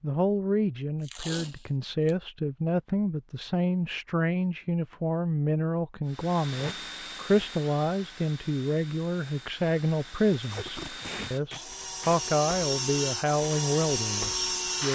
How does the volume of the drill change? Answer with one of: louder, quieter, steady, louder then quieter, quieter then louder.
quieter then louder.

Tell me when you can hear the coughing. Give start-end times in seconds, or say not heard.
not heard.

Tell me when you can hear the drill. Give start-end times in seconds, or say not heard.
6.0-14.8.